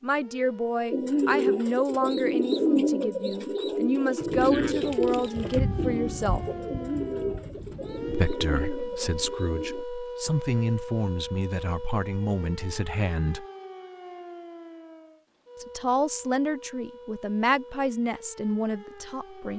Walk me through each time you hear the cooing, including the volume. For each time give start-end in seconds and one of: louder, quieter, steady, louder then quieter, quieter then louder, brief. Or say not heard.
0.9-9.8 quieter.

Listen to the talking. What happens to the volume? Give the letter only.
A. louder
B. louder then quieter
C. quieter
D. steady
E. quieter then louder
D.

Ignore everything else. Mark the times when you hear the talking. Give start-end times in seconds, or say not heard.
0.0-6.5, 8.1-13.4, 15.6-19.5.